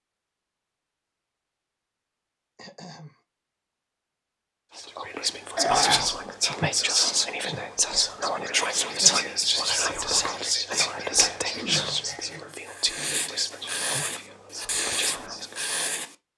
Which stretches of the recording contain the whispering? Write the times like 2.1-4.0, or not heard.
4.8-15.8.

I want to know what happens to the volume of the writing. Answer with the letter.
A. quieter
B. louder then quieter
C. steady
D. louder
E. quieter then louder
D.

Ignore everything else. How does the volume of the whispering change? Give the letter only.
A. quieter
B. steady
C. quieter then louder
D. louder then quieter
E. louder
A.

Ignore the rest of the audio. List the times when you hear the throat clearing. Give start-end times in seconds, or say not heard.
2.5-3.1, 5.5-6.1, 11.5-13.3.